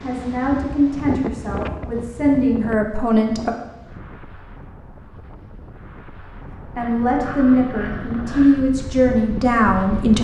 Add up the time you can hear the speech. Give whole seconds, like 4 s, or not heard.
7 s.